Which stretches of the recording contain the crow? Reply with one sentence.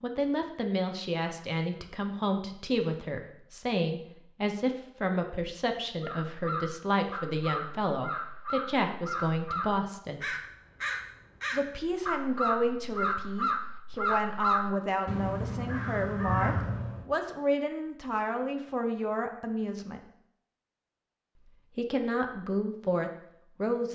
You can hear the crow from 6.0 to 17.1 s.